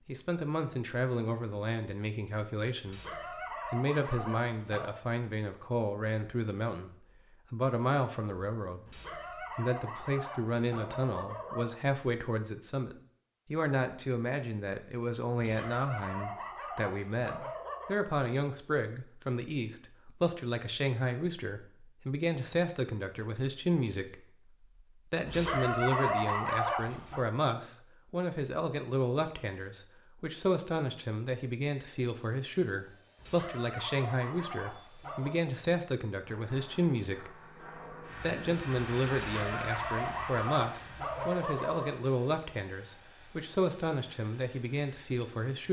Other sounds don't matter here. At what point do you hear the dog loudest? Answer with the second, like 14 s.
26 s.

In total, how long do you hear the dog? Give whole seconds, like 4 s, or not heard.
15 s.